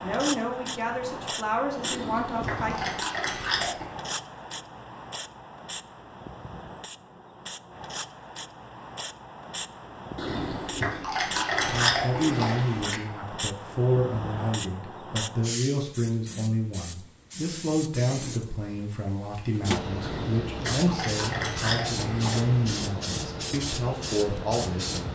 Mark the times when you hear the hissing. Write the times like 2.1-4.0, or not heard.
0.0-25.1.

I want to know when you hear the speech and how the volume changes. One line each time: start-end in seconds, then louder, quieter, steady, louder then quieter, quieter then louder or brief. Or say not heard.
0.0-2.8 brief
11.7-25.1 steady.